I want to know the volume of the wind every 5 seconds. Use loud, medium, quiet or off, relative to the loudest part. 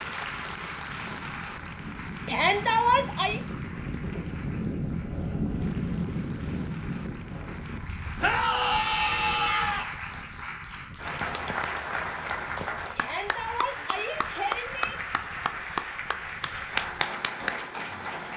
loud, loud, quiet, quiet.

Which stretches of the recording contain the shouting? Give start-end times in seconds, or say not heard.
2.2-3.4, 8.2-9.8, 12.9-14.9.